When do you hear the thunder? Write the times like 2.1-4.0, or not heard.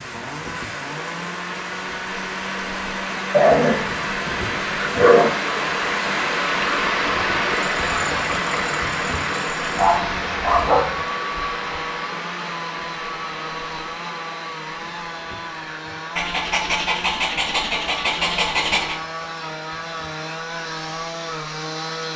not heard.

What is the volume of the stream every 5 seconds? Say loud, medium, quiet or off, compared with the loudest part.
medium, loud, medium, quiet, quiet.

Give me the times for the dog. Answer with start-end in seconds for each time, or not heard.
3.3-5.3, 9.8-11.0, 16.1-18.9.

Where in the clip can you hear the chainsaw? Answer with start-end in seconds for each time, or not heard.
0.0-22.1.